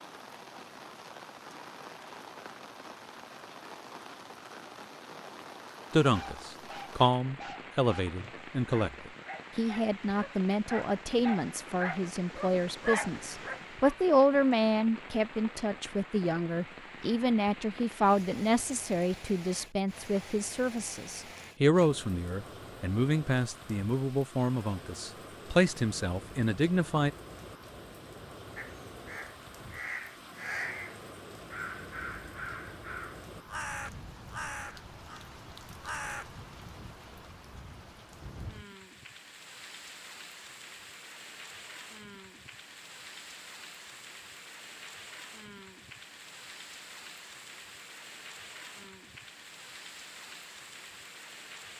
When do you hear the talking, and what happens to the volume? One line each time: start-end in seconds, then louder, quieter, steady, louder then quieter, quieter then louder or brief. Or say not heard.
5.9-27.1 steady.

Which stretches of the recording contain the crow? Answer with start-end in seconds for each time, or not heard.
28.6-36.4.